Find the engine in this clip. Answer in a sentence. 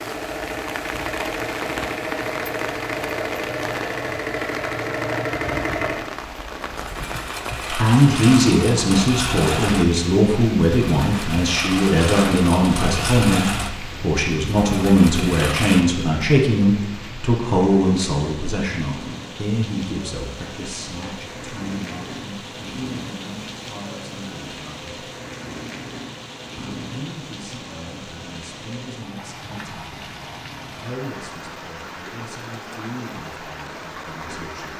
You can hear the engine from 0.0 to 15.8 s.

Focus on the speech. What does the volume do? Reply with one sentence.
The loudness of the speech goes down.